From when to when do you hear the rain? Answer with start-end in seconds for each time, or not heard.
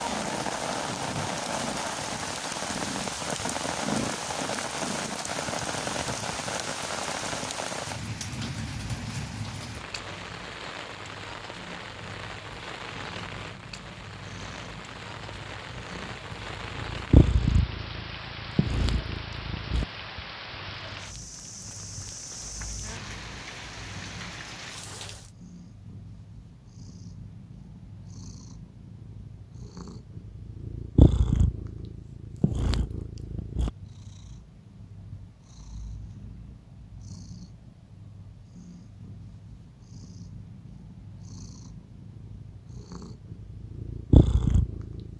0.0-25.3.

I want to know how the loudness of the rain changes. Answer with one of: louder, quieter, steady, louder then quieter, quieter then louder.
quieter.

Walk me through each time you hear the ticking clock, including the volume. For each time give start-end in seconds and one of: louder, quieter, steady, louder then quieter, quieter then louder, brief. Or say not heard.
not heard.